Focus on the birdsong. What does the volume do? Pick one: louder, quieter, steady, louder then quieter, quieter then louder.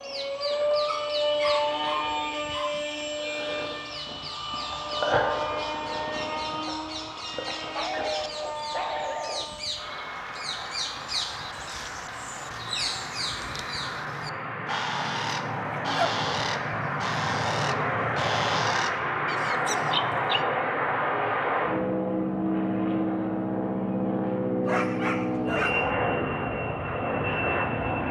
louder.